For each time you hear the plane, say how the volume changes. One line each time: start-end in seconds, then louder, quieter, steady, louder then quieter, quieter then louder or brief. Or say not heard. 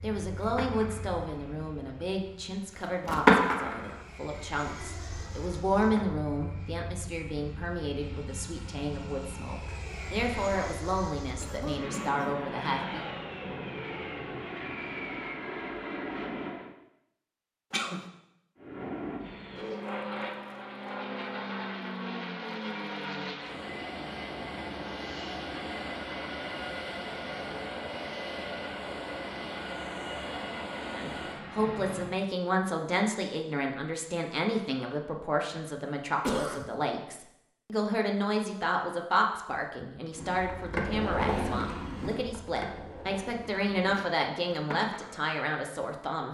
0.0-16.8 louder
18.6-32.2 steady.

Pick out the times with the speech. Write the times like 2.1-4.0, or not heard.
0.0-13.1, 30.9-46.3.